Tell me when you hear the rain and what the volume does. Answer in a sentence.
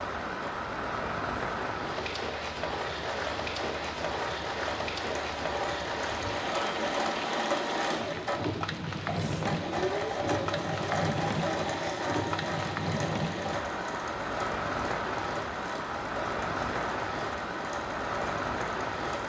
The rain can be heard from 0.0 to 19.2 s, at a steady volume.